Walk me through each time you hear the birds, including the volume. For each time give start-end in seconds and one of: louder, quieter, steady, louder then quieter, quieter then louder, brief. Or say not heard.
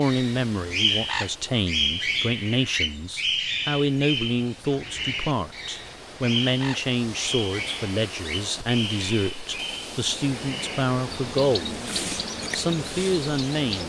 0.0-13.8 quieter.